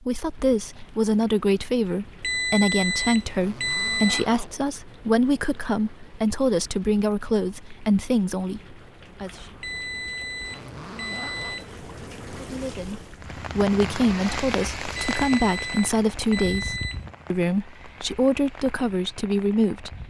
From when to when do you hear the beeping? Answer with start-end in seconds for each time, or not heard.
2.2-4.2, 9.6-11.8, 14.9-17.1.